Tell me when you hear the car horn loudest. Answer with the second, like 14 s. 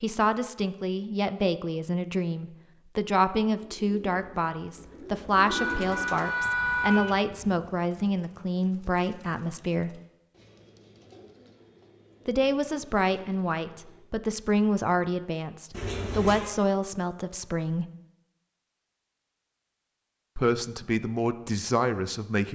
7 s.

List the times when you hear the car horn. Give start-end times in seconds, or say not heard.
5.5-7.0, 15.7-16.5.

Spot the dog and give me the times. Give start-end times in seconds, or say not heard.
not heard.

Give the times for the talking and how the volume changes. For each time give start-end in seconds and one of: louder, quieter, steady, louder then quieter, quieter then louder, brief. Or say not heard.
0.0-10.0 steady
12.2-17.9 steady
20.4-22.5 brief.